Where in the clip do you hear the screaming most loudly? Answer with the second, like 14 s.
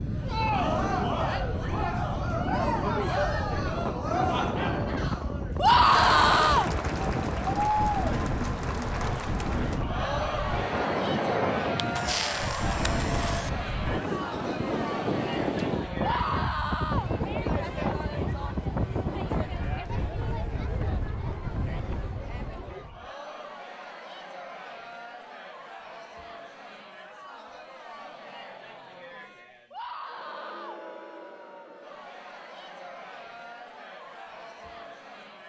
6 s.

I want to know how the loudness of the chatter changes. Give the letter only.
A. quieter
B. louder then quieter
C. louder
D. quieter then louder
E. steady
A.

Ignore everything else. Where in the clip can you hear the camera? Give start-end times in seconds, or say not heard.
11.8-13.5.